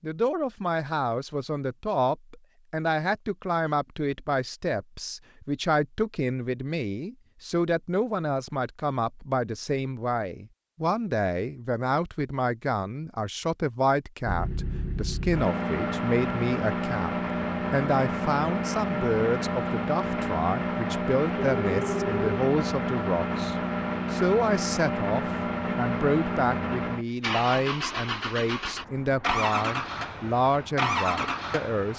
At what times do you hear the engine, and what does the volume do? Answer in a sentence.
You can hear the engine from 14.2 to 31.9 s, at a steady volume.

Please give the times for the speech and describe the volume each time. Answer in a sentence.
The speech can be heard from 0.0 to 31.9 s, at a steady volume.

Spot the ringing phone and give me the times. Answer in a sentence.
The ringing phone can be heard from 21.4 to 22.2 s.